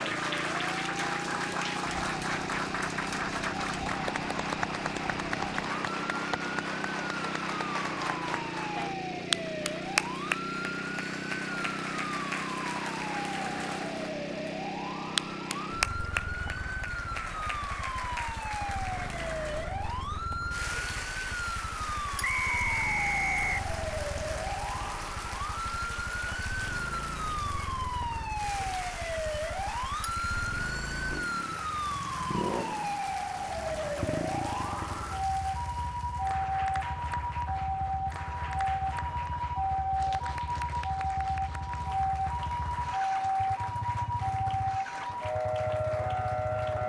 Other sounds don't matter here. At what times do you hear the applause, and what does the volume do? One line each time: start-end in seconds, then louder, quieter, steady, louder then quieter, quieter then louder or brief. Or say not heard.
0.0-46.8 quieter.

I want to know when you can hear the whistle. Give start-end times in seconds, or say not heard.
22.2-23.6.